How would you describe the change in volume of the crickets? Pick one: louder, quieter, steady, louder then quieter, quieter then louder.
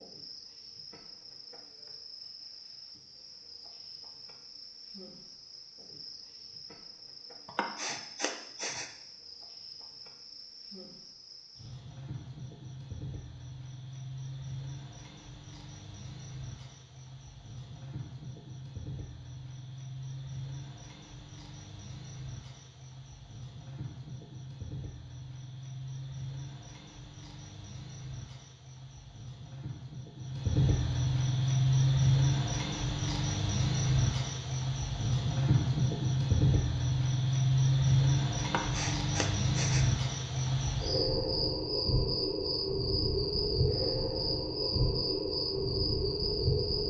louder.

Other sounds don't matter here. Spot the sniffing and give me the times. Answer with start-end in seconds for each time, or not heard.
7.5-8.9, 38.4-39.9.